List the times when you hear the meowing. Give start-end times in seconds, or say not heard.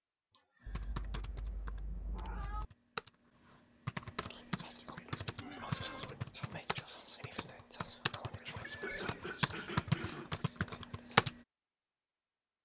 0.7-2.6, 5.1-6.4, 8.6-9.1.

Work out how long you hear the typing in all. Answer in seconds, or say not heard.
11 s.